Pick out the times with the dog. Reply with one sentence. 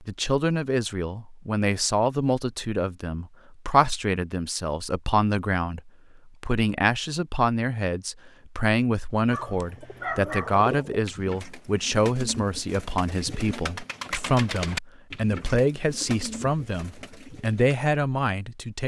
You can hear the dog from 9.3 to 10.7 s.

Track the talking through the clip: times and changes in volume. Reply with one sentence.
The talking can be heard from 0.0 to 18.8 s, at a steady volume.